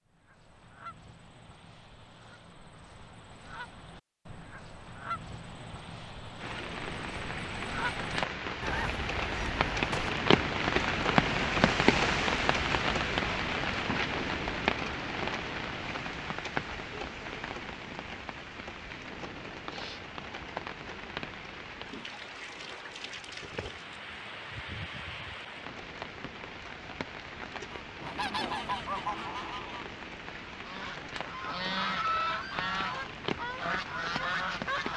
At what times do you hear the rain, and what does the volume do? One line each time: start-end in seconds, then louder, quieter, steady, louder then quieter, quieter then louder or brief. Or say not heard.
6.4-34.9 quieter.